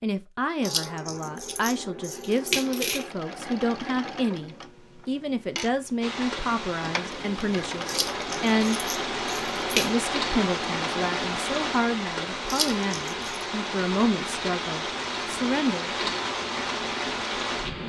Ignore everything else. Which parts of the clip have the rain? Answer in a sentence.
The rain can be heard from 6.0 to 17.8 s.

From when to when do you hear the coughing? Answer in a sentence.
The coughing can't be heard in this clip.